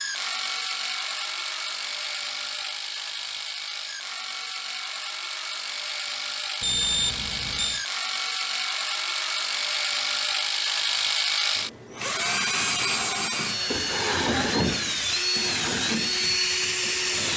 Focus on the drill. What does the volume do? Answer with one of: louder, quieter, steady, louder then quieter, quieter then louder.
louder.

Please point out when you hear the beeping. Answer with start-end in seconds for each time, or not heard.
6.6-7.8.